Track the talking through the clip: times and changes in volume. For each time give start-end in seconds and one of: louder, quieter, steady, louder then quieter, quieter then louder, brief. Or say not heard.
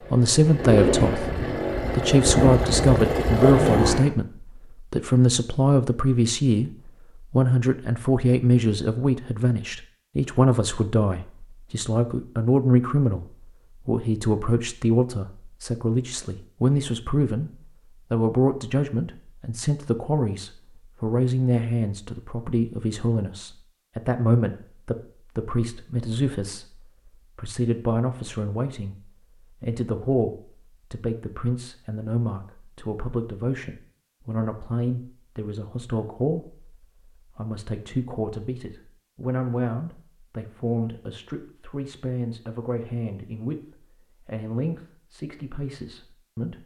0.1-46.6 quieter.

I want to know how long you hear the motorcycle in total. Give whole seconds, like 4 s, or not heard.
4 s.